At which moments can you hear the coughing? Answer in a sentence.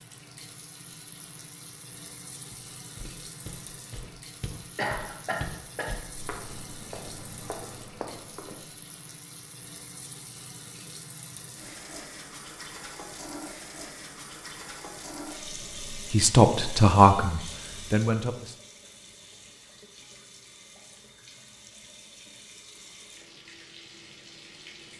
The coughing can be heard from 4.8 to 5.9 s.